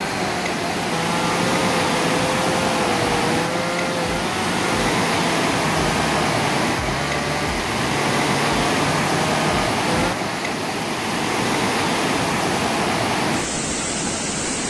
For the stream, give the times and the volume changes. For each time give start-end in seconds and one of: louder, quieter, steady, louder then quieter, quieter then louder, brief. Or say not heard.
0.0-14.6 steady.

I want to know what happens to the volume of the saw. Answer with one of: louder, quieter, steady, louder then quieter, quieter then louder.
steady.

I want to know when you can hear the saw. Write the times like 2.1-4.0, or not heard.
0.0-10.2.